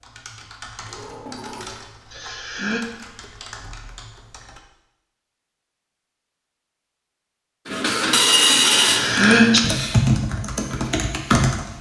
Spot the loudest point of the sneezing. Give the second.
9 s.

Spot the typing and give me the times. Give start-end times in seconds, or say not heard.
0.0-4.6, 8.8-11.7.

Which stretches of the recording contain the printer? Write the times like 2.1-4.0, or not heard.
7.7-10.0.